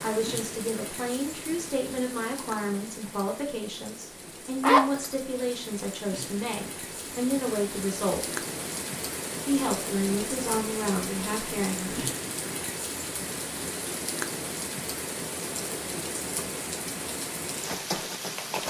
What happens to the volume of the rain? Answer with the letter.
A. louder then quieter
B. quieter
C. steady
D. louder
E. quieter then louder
D.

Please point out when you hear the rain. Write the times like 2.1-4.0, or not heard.
0.0-18.6.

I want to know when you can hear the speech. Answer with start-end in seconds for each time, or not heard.
0.0-8.3, 9.4-11.9.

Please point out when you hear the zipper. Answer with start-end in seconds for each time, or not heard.
4.6-5.2.